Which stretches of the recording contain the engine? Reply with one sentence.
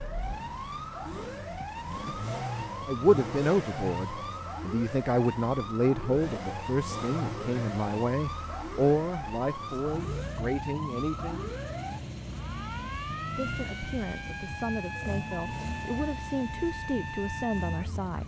The engine can be heard from 0.0 to 18.2 s.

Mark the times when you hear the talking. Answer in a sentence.
The talking can be heard from 2.9 to 11.6 s and from 13.3 to 18.2 s.